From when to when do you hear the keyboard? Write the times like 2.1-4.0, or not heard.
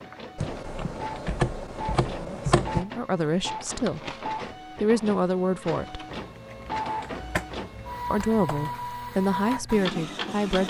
0.3-2.9, 6.2-8.9.